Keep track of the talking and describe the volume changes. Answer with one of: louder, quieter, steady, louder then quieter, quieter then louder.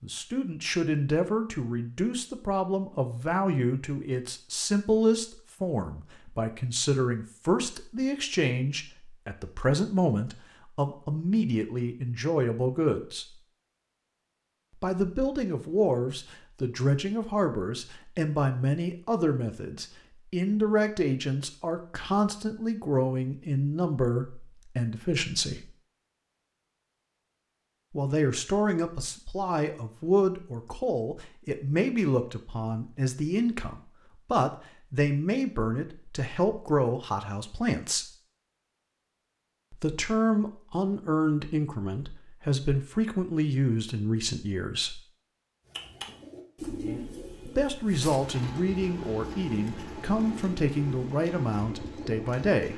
steady.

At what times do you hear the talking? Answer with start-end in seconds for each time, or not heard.
0.0-13.3, 14.8-25.7, 27.9-38.1, 39.7-45.0, 47.5-52.7.